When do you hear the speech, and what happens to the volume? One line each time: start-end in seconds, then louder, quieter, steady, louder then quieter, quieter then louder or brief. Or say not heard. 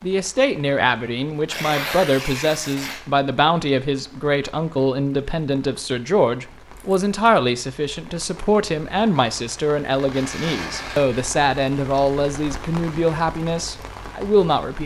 0.0-14.8 steady.